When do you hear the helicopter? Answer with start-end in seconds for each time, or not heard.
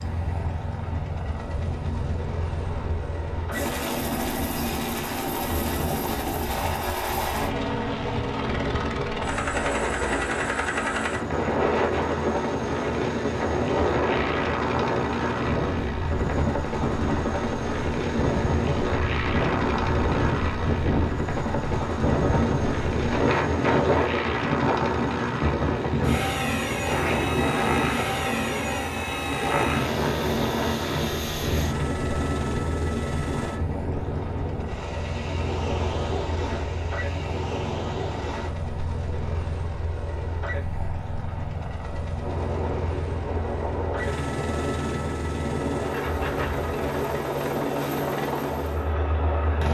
0.0-49.6.